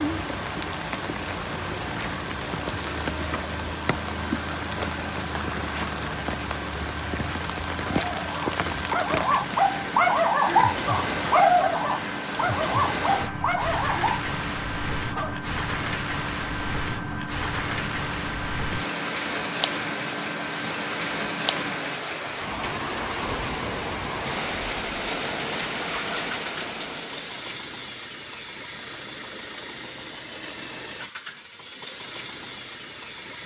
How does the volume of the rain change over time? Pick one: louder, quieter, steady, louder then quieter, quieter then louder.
steady.